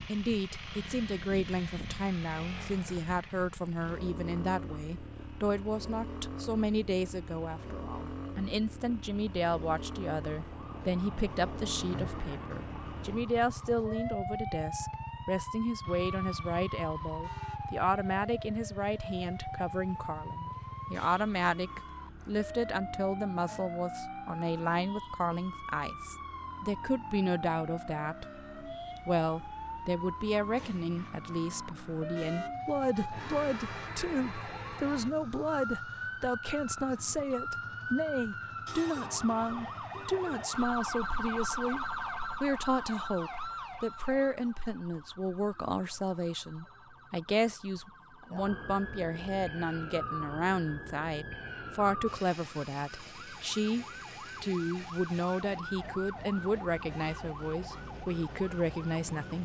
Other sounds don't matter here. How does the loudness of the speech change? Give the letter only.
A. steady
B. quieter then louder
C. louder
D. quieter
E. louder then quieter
A.